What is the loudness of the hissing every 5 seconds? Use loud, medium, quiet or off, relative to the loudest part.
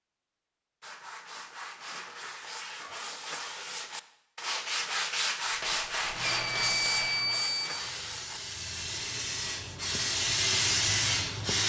off, medium, loud.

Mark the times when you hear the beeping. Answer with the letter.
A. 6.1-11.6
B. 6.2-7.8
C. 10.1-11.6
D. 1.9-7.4
B.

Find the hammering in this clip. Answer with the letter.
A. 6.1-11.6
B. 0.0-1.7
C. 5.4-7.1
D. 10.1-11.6
C.